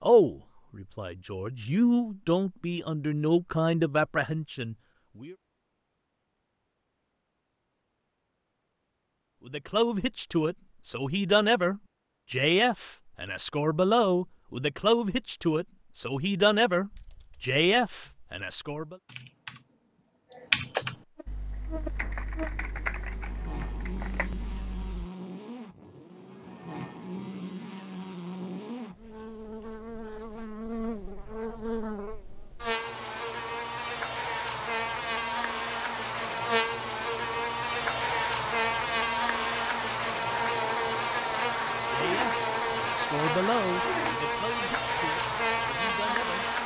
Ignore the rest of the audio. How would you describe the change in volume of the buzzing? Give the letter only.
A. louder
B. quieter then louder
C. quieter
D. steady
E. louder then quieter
A.